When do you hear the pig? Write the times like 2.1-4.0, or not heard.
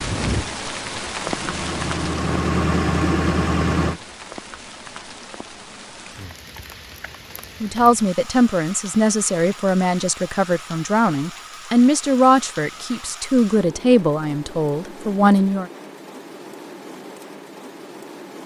not heard.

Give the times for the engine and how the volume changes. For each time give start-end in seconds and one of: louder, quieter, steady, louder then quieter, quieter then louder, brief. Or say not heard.
0.0-4.0 louder.